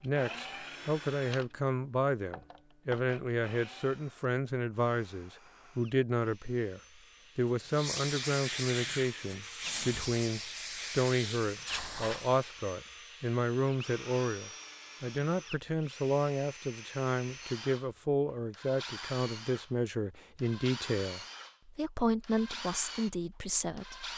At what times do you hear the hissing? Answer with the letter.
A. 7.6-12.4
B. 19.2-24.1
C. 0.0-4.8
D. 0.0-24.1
A.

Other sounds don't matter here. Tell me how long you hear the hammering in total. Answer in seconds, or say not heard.
not heard.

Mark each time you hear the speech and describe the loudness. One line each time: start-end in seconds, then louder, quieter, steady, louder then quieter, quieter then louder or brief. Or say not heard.
0.0-24.1 steady.